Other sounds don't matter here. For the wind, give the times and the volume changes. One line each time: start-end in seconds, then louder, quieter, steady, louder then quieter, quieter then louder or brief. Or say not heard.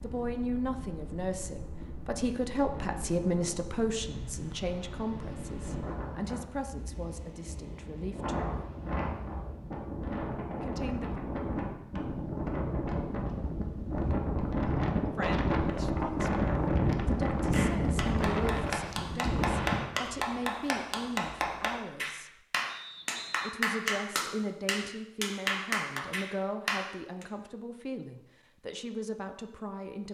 0.0-19.9 louder.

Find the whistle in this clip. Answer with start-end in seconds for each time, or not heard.
22.6-23.6.